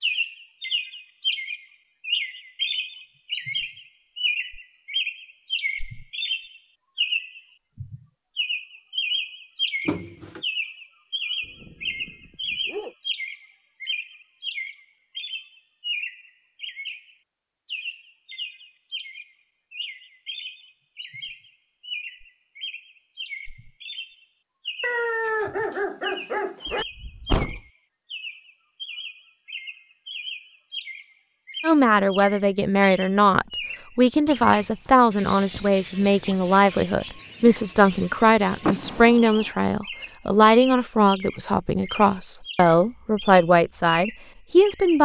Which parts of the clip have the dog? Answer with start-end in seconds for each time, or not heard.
11.4-12.9, 24.8-26.9, 34.2-36.5.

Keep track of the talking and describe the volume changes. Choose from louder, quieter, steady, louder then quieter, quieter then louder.
steady.